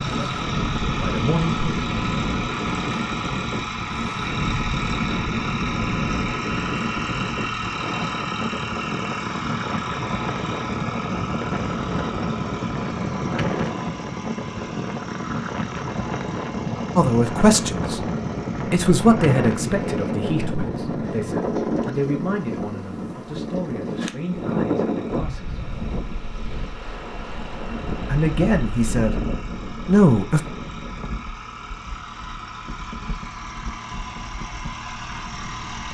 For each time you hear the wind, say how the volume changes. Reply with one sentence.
You can hear the wind from 0.0 to 35.8 s, getting quieter.